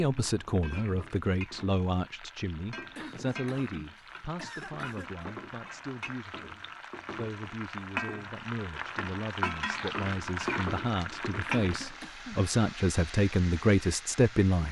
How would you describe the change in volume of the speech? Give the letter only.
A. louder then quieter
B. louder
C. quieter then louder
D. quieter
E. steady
C.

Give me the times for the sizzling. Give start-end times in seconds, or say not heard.
0.0-14.6.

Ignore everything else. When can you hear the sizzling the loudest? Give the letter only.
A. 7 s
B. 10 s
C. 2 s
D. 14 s
B.